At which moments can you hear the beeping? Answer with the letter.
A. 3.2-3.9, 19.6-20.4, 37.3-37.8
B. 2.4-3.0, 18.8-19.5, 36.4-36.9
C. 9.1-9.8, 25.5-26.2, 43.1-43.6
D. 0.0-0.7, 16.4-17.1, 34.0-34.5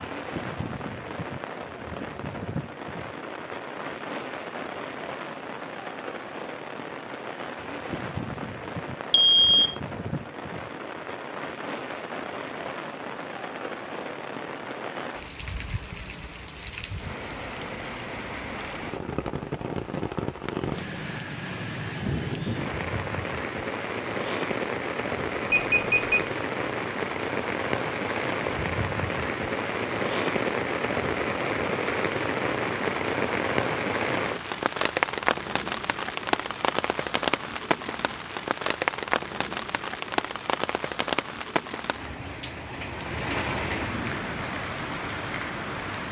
C.